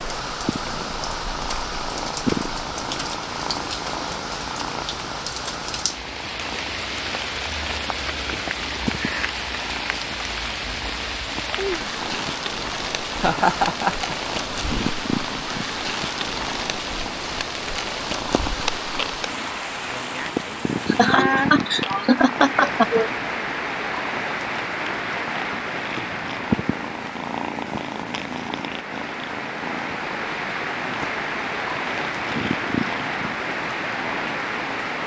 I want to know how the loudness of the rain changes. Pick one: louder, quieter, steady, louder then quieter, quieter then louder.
steady.